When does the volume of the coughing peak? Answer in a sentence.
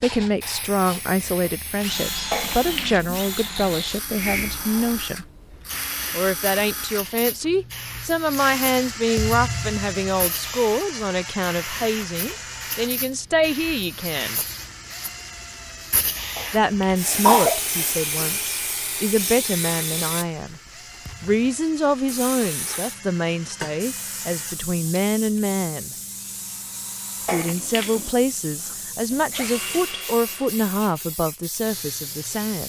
The loudest moment of the coughing is at 17 seconds.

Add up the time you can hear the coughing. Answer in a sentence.
The coughing can be heard for 3 seconds in total.